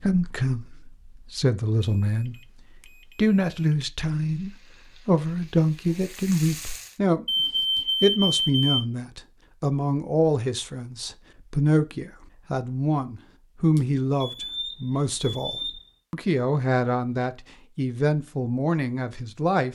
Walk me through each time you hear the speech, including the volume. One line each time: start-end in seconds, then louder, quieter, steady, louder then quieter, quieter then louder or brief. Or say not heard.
0.0-19.7 steady.